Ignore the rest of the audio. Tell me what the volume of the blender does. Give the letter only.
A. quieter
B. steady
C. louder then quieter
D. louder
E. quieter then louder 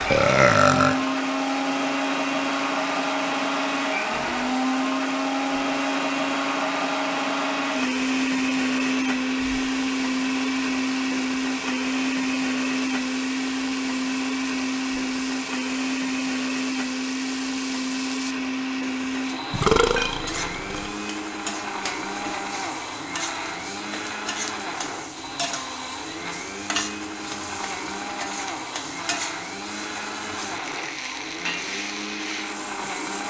A.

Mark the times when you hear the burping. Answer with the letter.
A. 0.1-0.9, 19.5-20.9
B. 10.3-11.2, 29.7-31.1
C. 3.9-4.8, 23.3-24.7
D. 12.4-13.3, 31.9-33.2
A.